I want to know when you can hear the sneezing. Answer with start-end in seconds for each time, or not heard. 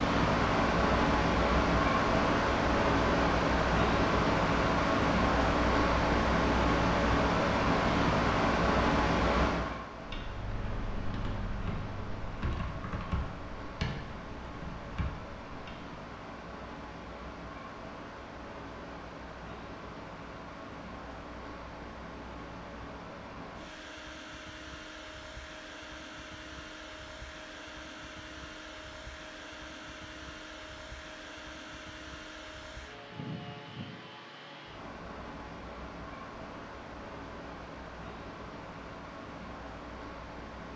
not heard.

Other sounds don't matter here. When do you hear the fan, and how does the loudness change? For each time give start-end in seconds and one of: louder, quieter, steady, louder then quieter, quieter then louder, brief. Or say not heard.
0.0-40.7 quieter.